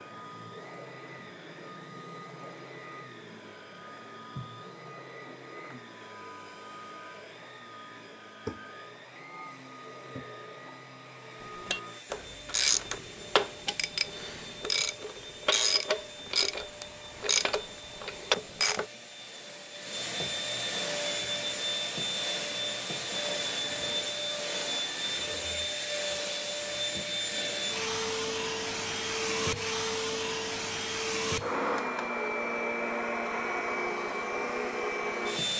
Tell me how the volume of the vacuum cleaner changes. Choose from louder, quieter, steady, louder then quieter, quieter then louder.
louder.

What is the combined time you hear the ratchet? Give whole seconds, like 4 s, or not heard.
7 s.